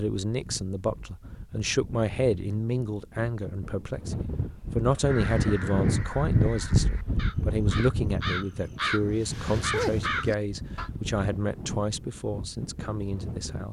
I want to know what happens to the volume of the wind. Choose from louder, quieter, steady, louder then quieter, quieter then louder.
louder then quieter.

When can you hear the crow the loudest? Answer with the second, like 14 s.
10 s.